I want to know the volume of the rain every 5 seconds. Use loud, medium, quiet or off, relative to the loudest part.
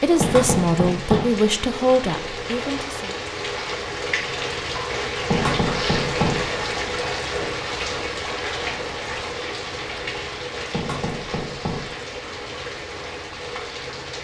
loud, loud, medium.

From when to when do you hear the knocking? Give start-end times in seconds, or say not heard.
0.2-1.2, 5.3-6.5, 10.7-11.9.